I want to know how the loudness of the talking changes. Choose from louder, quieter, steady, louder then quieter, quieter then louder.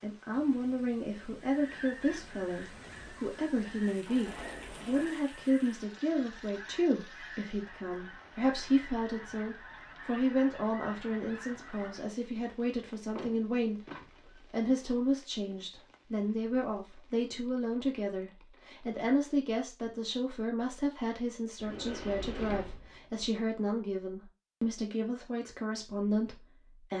steady.